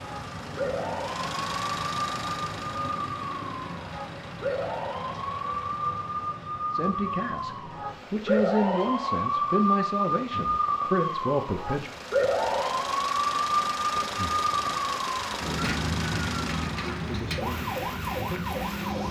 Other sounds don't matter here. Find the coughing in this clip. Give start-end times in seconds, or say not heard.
not heard.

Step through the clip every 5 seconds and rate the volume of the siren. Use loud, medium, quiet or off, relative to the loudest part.
medium, loud, loud, medium.